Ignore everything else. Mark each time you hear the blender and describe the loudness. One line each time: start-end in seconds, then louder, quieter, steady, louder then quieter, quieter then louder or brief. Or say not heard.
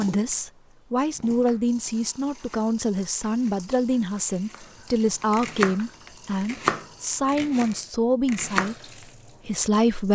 not heard.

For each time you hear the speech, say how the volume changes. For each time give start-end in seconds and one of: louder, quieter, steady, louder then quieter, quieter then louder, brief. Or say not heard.
0.0-10.0 steady.